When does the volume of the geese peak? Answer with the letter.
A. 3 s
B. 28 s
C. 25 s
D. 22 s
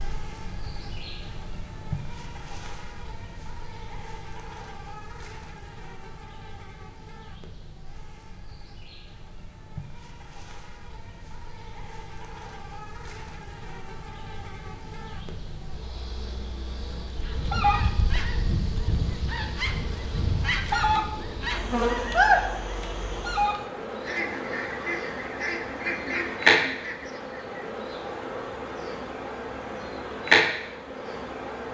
D.